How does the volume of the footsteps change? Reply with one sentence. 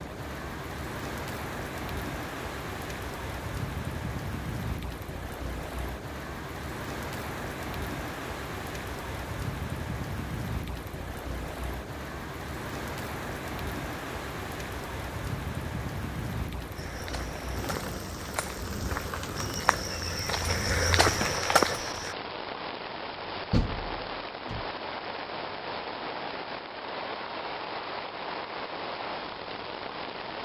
The volume of the footsteps goes up.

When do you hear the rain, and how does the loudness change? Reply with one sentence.
You can hear the rain from 0.0 to 30.4 s, at a steady volume.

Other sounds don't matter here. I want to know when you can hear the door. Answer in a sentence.
The door can be heard from 23.5 to 24.6 s.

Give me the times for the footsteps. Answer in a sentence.
You can hear the footsteps from 16.8 to 22.1 s.